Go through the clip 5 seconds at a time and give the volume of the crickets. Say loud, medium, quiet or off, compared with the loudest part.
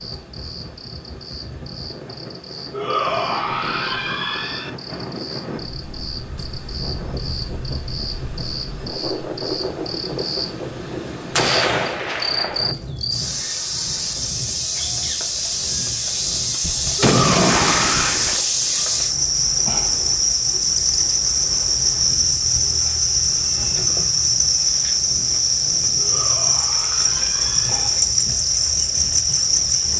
quiet, quiet, medium, loud, loud, loud.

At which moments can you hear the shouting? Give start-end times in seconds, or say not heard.
2.7-4.7, 16.9-18.1, 25.9-27.9.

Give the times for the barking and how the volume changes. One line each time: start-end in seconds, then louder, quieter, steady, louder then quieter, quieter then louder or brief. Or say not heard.
not heard.